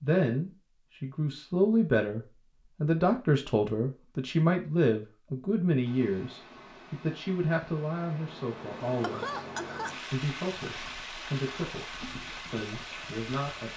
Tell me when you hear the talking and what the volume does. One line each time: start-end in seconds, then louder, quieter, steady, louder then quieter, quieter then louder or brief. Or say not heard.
0.0-11.8 quieter
12.5-13.7 brief.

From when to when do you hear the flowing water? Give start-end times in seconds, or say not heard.
5.8-13.7.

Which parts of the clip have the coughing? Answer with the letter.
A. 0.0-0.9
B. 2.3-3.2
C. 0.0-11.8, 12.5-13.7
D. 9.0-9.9
D.